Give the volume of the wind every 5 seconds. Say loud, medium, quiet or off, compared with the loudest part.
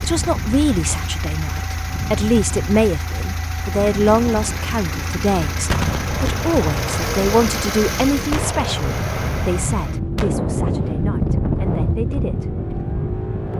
medium, medium, loud.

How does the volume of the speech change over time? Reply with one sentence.
The volume of the speech goes down.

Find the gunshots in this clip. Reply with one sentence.
The gunshots can be heard from 5.7 to 10.3 s.